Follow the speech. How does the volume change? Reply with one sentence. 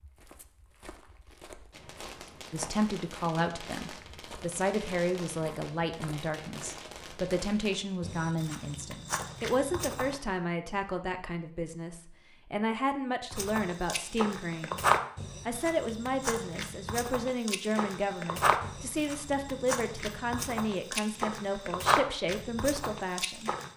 The loudness of the speech stays about the same.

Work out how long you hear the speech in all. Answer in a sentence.
The speech can be heard for 21 seconds in total.